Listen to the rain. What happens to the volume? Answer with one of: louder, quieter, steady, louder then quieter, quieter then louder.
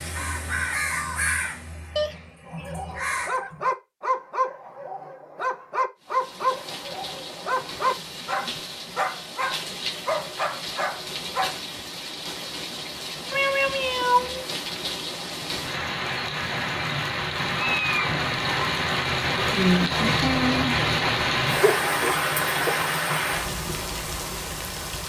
louder.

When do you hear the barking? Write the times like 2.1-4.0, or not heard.
2.5-11.6.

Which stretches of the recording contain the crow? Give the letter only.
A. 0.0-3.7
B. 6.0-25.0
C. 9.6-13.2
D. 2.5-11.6
A.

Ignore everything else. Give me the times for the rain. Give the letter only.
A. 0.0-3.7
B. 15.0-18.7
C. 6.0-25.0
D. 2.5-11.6
C.